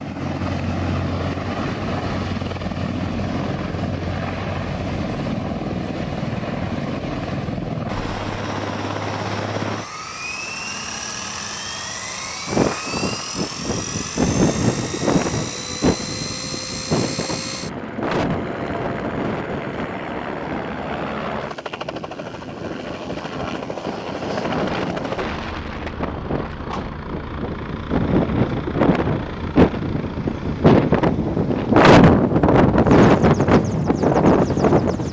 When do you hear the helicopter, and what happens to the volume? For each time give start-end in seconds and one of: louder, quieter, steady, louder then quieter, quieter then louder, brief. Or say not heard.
0.0-35.0 quieter.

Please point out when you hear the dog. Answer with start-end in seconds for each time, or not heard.
not heard.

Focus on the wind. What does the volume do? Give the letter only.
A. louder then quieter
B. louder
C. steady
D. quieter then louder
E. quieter
D.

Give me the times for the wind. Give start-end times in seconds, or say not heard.
12.4-35.0.